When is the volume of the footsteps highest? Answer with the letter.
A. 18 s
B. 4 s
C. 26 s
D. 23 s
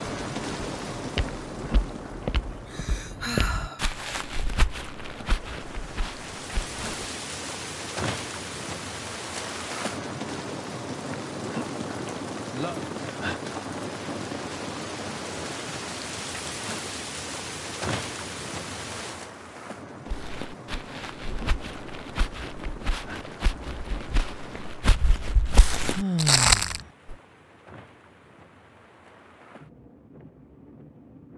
C.